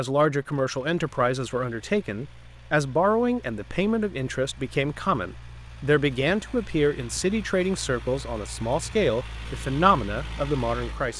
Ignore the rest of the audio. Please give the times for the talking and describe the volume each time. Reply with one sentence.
The talking can be heard from 0.0 to 11.1 s, at a steady volume.